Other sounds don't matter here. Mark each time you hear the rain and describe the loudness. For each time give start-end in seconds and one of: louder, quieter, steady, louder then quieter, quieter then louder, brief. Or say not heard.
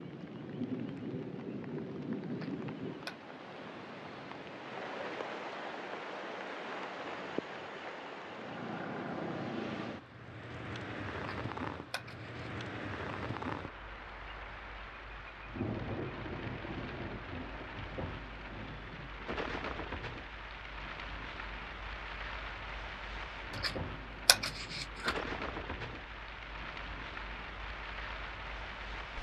0.0-29.1 steady.